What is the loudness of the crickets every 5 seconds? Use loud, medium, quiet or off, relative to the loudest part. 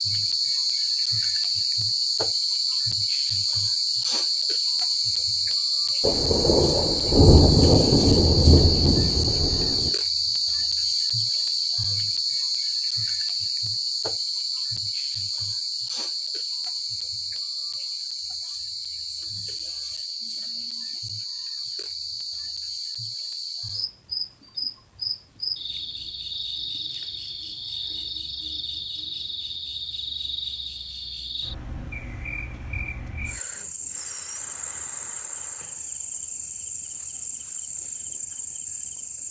loud, loud, loud, medium, medium, medium, medium, medium.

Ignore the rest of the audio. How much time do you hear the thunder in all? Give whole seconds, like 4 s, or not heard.
4 s.